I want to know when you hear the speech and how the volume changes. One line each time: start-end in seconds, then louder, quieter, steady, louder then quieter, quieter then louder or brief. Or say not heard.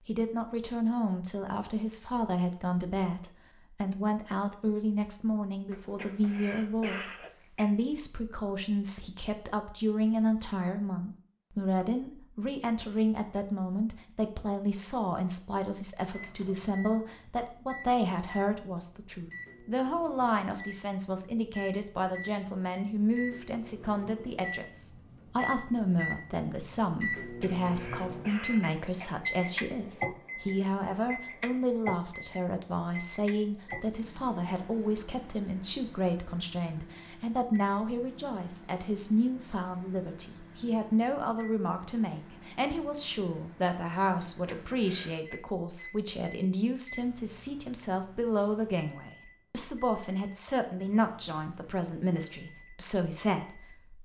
0.1-53.9 steady.